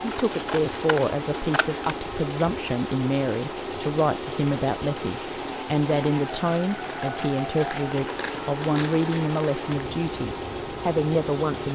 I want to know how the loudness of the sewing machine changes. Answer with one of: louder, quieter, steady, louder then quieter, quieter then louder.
steady.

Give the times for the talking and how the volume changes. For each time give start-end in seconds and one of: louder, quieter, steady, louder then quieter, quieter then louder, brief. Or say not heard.
0.0-11.7 steady.